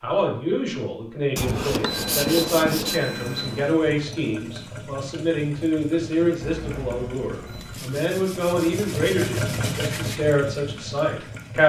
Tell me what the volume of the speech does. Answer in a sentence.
The loudness of the speech stays about the same.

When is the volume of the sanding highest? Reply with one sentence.
The volume of the sanding peaks at 2 seconds.